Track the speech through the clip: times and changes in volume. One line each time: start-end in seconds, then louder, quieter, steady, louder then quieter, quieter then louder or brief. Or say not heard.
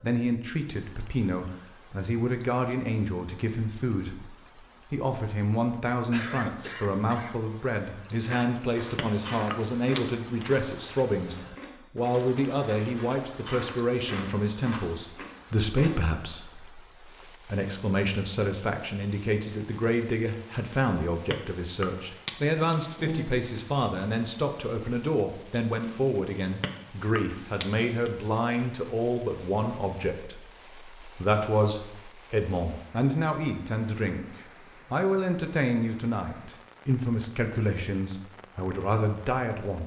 0.0-39.8 steady.